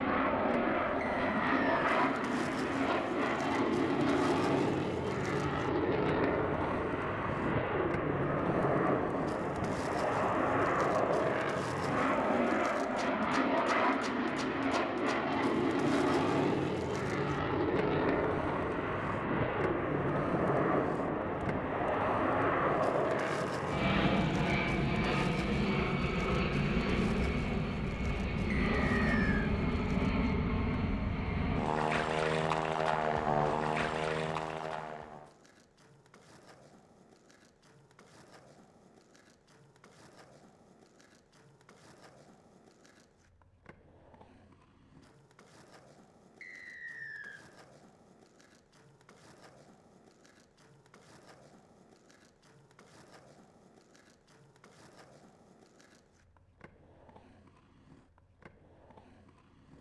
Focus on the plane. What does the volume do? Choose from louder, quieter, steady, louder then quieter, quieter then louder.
steady.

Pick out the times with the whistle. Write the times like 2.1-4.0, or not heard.
1.0-1.9, 28.5-29.5, 46.4-47.4.